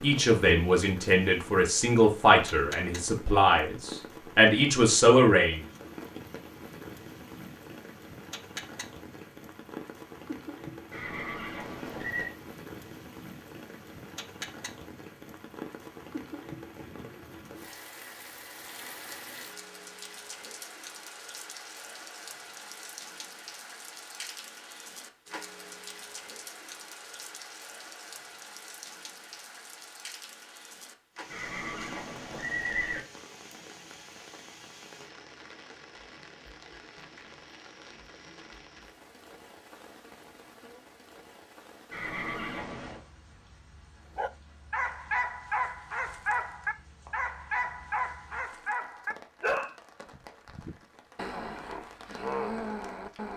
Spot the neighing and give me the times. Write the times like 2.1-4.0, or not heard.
10.9-12.3, 31.3-33.0, 41.9-43.0.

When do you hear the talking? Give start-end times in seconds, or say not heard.
0.0-5.6.